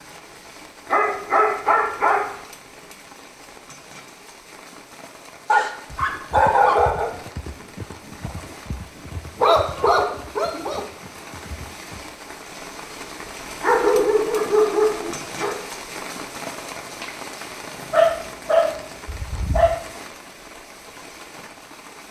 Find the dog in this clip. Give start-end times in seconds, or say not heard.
0.9-2.4, 5.5-7.1, 9.3-10.8, 13.6-15.6, 17.9-19.8.